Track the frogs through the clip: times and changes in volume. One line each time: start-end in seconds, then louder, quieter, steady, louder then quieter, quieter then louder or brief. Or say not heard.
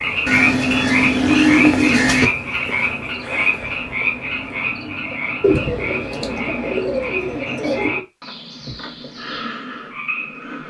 0.0-10.6 quieter.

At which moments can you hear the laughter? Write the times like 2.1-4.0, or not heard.
not heard.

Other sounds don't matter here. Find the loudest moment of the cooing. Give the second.
2 s.